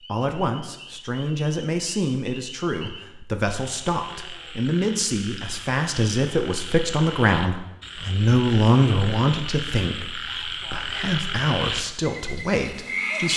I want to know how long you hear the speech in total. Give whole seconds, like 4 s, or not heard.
13 s.